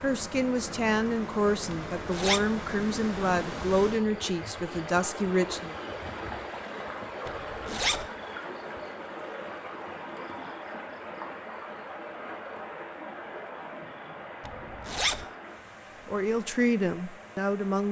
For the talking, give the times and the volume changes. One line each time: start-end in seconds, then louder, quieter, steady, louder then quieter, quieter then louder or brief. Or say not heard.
0.0-5.8 steady
16.1-17.8 brief.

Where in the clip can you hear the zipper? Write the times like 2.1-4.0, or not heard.
1.9-2.4, 7.2-8.1, 14.4-15.2.